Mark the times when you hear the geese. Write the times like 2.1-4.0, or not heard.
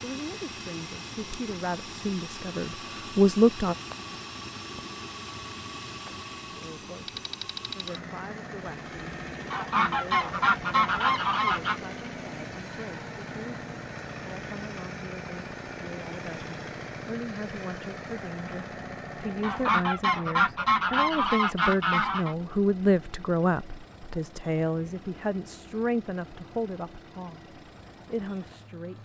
9.5-11.8, 19.4-22.4.